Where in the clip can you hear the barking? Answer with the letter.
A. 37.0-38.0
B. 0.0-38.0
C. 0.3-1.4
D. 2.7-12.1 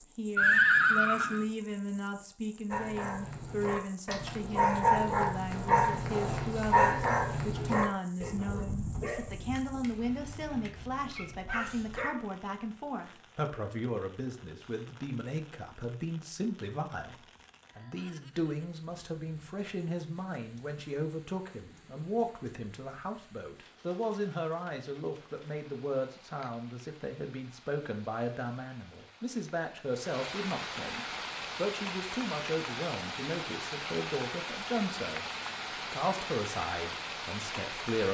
D.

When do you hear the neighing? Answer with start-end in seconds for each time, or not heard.
0.3-1.4.